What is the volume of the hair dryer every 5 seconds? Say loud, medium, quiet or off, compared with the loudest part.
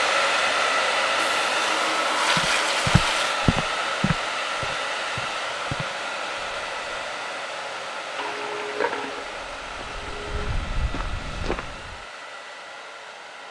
loud, medium, quiet.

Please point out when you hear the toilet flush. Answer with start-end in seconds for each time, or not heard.
1.1-3.4, 8.2-10.6.